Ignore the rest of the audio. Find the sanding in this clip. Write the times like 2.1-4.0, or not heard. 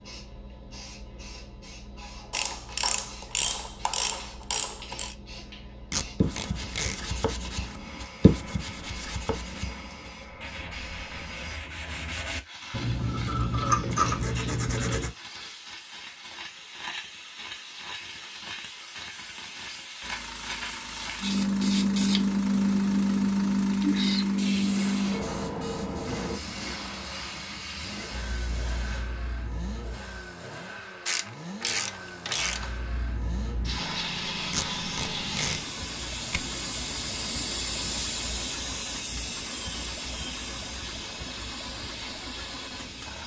6.2-15.2.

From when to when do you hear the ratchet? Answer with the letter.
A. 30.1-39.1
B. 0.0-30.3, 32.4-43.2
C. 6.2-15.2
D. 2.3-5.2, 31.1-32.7
D.